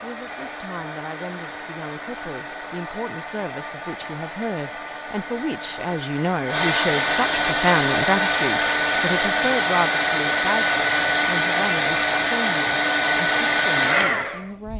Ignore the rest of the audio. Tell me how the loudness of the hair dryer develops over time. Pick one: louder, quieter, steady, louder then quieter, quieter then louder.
louder.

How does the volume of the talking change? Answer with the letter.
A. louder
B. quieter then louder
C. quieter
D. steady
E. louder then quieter
E.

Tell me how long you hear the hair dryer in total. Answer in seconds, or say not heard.
15 s.